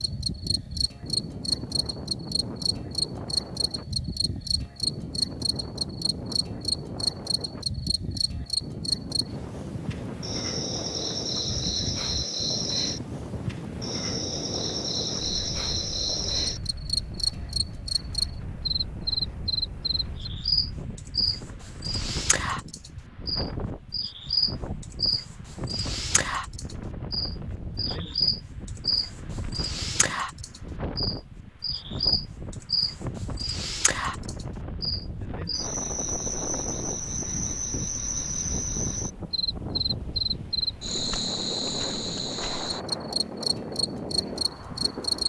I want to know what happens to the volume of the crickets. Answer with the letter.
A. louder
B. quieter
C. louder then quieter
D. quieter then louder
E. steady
E.